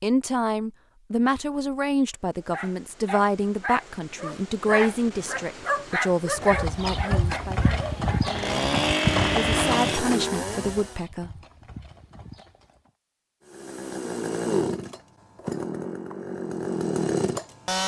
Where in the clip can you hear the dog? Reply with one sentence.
The dog can be heard from 2.4 to 8.3 s.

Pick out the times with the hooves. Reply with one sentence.
You can hear the hooves from 6.3 to 12.9 s.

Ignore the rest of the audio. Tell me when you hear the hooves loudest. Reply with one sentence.
The loudest moment of the hooves is at 9 seconds.